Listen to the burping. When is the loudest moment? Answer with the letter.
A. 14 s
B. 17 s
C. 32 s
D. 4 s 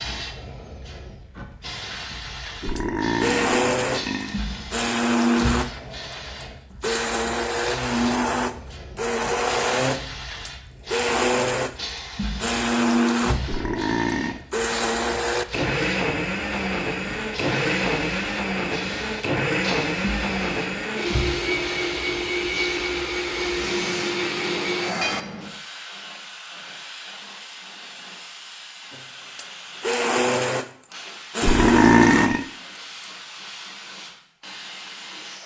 C.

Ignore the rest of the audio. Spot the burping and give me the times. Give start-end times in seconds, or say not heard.
2.6-4.4, 13.4-14.4, 31.4-32.5.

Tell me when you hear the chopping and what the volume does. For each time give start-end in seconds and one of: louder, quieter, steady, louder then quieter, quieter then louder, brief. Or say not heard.
not heard.